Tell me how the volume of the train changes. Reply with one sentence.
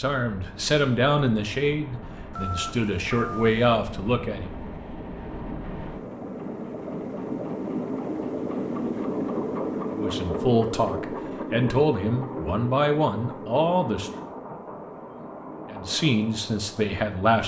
The loudness of the train goes up, then down.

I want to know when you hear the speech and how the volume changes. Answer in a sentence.
You can hear the speech from 0.0 to 4.5 s, getting quieter then louder; from 9.9 to 14.1 s, at a steady volume; and briefly from 15.7 to 17.4 s.